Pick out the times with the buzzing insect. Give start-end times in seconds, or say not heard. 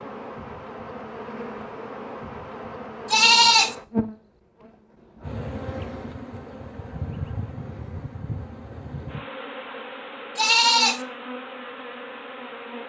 0.0-12.8.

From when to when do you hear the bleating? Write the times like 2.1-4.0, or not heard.
3.1-3.8, 10.3-11.0.